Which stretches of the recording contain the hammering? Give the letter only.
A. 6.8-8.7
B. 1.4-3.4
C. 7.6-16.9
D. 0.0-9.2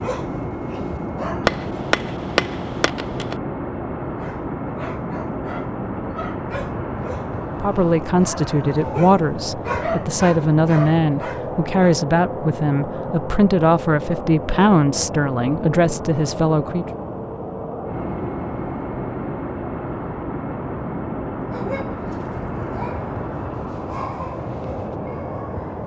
B.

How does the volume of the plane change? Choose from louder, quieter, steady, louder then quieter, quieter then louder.
steady.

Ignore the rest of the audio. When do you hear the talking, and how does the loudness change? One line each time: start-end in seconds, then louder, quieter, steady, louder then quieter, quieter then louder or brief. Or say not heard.
7.6-16.9 steady.